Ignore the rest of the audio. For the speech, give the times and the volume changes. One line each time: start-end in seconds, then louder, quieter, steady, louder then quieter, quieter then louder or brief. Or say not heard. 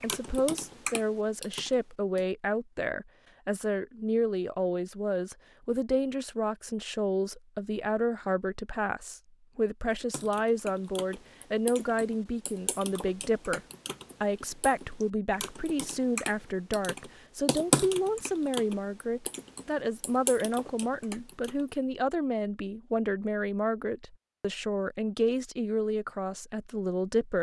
0.0-13.6 steady
14.2-27.3 steady.